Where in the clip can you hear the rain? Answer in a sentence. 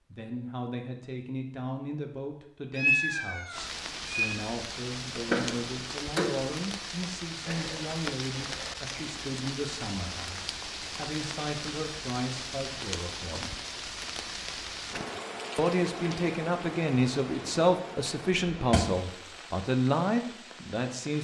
The rain can be heard from 3.5 to 21.2 s.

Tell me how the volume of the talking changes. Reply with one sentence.
The loudness of the talking goes up.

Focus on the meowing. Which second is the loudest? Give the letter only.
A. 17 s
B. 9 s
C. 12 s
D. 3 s
D.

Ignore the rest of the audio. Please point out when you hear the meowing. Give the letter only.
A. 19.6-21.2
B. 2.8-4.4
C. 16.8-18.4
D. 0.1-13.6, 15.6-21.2
B.